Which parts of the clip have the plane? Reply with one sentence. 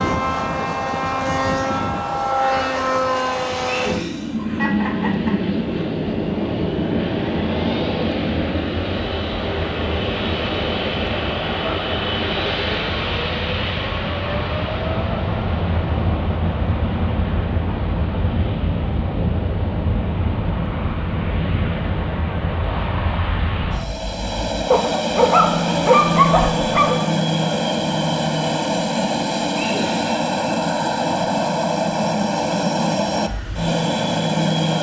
The plane can be heard from 0.0 to 34.7 s.